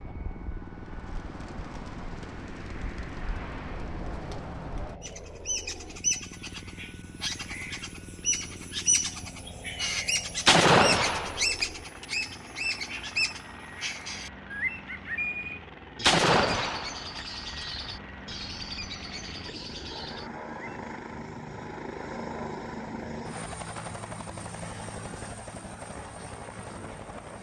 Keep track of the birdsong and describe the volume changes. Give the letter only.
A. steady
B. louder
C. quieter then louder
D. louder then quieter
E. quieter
D.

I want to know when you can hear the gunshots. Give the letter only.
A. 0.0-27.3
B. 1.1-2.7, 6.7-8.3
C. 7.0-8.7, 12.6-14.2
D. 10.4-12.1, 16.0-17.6
D.